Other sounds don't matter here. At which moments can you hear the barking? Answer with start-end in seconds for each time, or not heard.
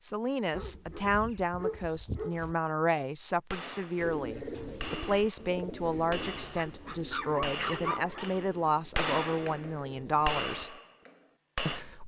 0.5-2.5, 6.5-8.3.